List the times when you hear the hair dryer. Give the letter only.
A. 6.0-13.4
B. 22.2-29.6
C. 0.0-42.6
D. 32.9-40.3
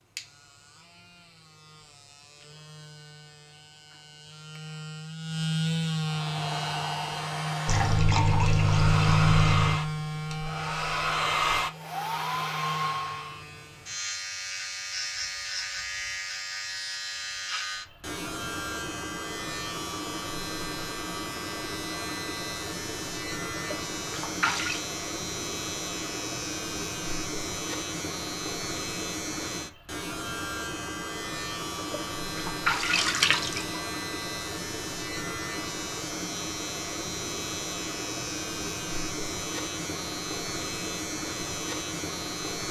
A.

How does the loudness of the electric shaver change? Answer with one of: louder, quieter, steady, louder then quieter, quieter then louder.
steady.